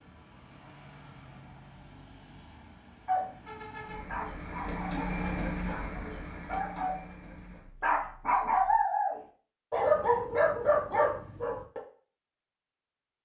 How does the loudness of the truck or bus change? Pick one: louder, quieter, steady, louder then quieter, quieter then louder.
louder then quieter.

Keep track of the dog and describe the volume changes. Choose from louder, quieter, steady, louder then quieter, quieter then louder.
louder.